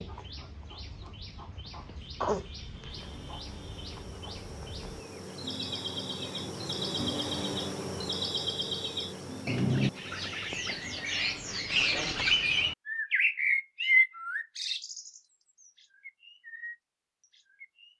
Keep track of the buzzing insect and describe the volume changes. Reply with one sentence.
The loudness of the buzzing insect goes up, then down.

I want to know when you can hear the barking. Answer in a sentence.
You can't hear the barking here.